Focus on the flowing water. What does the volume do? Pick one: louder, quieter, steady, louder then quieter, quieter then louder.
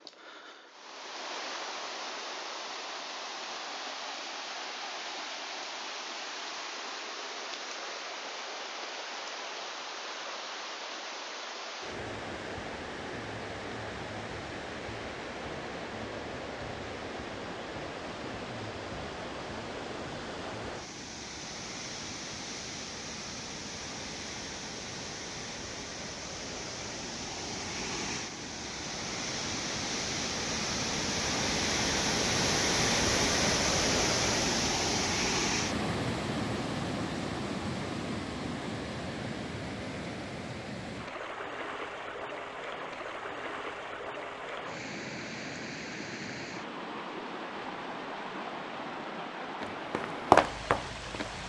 louder then quieter.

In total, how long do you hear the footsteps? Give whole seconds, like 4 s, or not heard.
2 s.